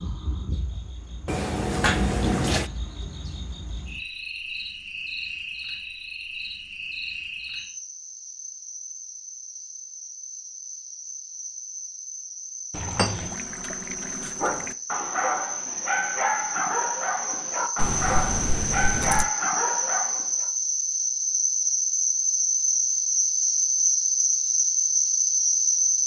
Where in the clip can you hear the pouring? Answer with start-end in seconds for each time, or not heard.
1.2-2.7, 12.7-14.8, 17.8-19.3.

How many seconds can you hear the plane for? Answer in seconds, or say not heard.
not heard.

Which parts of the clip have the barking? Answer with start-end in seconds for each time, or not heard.
14.3-20.5.